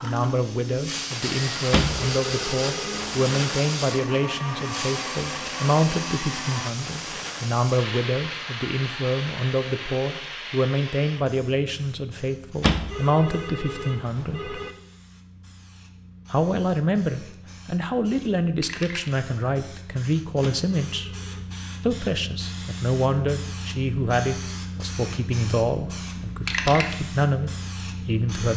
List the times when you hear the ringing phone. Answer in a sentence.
The ringing phone can be heard from 1.7 to 3.2 s, from 12.6 to 14.7 s and from 20.4 to 21.4 s.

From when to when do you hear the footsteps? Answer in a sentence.
You can't hear the footsteps here.